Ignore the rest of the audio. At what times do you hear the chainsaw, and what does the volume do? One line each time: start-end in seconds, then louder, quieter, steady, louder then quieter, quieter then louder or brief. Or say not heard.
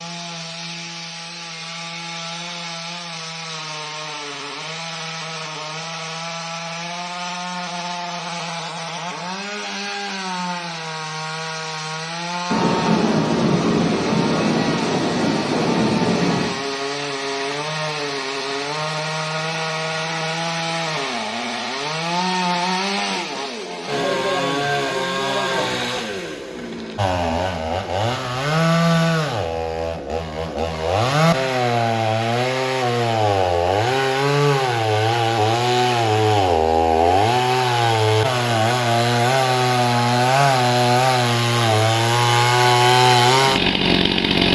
0.0-44.5 louder.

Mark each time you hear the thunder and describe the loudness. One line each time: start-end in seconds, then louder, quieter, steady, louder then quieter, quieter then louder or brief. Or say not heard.
12.5-16.5 steady.